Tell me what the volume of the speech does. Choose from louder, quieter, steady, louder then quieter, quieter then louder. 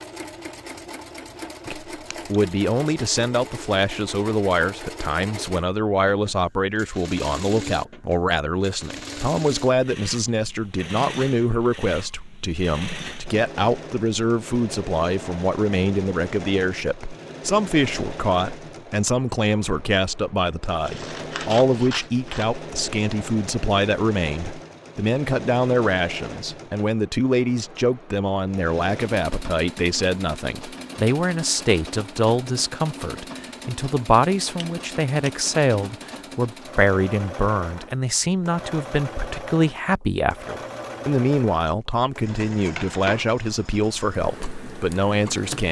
steady.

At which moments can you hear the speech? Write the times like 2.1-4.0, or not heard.
1.6-45.6.